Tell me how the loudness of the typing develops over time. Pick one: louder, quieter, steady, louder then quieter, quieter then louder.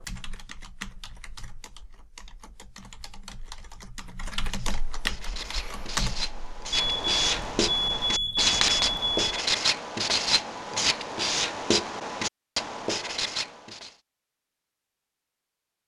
quieter then louder.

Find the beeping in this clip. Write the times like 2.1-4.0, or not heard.
6.7-9.4.